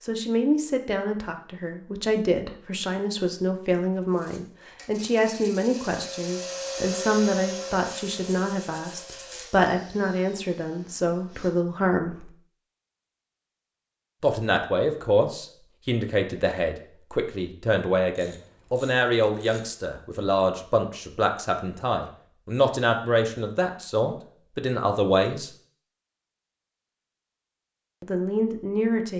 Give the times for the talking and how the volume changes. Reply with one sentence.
The talking can be heard from 0.0 to 12.3 s, at a steady volume; from 14.2 to 25.5 s, at a steady volume; and briefly from 28.0 to 29.1 s.